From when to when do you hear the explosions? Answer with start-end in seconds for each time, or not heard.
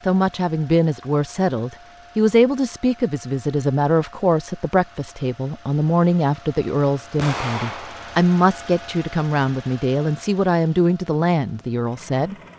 7.2-8.2.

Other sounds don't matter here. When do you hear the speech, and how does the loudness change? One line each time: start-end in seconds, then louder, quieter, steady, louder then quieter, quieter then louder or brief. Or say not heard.
0.1-12.3 steady.